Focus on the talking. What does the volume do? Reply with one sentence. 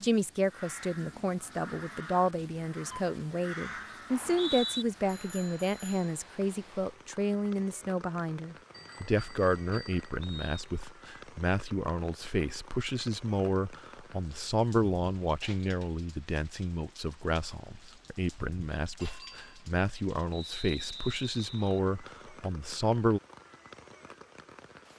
The loudness of the talking stays about the same.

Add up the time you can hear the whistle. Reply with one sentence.
The whistle can be heard for 3 seconds in total.